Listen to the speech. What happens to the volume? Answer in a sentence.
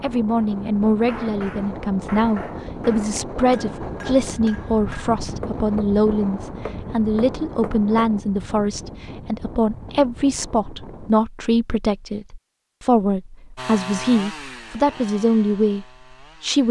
The loudness of the speech stays about the same.